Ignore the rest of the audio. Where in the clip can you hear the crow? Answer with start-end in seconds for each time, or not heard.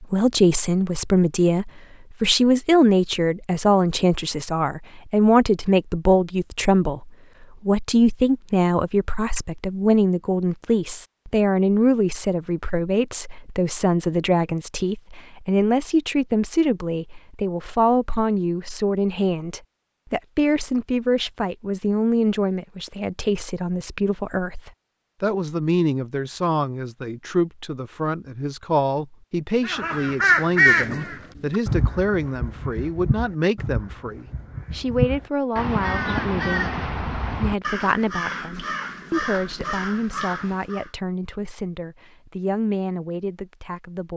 29.6-40.9.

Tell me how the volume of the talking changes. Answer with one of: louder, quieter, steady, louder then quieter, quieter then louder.
quieter.